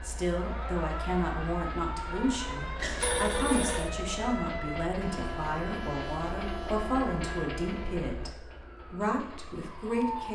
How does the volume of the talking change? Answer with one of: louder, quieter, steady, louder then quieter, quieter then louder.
steady.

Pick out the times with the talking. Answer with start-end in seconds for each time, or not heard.
0.0-10.2.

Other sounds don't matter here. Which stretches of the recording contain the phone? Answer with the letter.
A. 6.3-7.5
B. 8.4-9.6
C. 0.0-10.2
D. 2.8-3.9
D.